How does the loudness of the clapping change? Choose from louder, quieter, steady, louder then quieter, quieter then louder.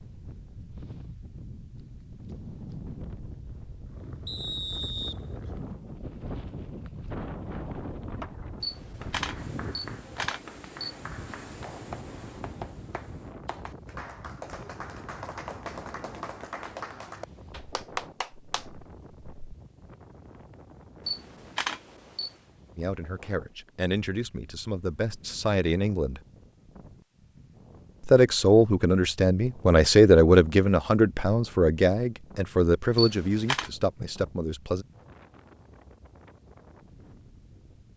louder.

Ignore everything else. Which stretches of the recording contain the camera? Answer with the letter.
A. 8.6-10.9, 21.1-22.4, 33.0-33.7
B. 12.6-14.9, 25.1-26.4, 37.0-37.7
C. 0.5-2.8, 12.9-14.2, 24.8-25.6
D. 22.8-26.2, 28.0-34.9
A.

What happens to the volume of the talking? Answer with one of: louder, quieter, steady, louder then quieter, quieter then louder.
louder then quieter.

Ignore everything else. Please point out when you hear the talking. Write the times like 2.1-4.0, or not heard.
22.8-26.2, 28.0-34.9.